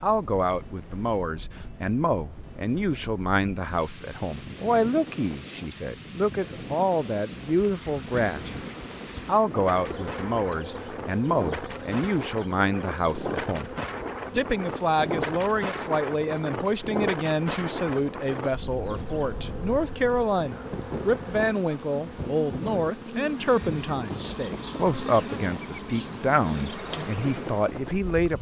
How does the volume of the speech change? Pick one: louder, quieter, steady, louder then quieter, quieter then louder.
steady.